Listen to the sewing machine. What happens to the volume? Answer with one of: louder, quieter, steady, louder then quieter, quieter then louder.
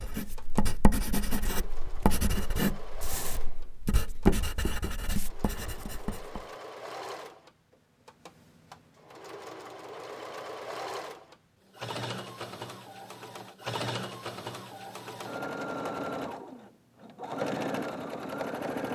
louder.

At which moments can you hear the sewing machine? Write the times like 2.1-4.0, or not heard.
0.1-18.8.